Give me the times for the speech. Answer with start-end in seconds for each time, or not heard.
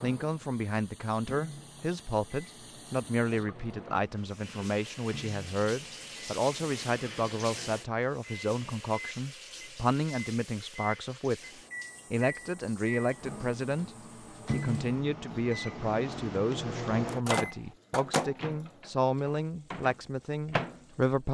0.0-11.5, 12.1-13.9, 14.5-21.2.